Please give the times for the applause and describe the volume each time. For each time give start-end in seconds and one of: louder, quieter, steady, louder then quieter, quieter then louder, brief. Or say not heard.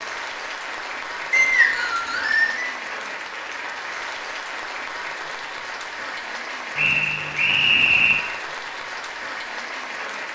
0.0-10.3 steady.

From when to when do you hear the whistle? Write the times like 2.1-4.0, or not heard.
1.3-2.6, 6.8-8.2.